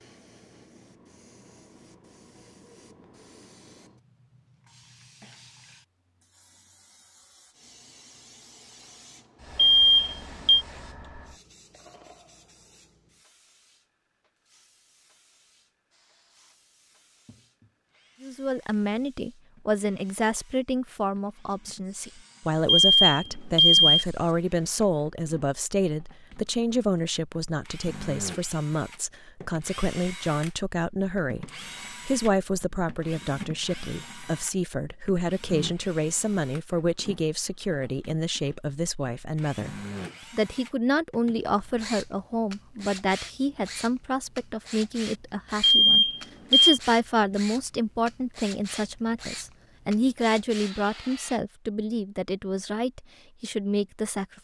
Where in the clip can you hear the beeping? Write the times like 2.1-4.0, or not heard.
9.6-10.7, 22.6-24.1, 45.6-46.8.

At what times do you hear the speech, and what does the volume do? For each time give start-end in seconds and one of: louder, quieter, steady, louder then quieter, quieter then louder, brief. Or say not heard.
18.2-54.2 steady.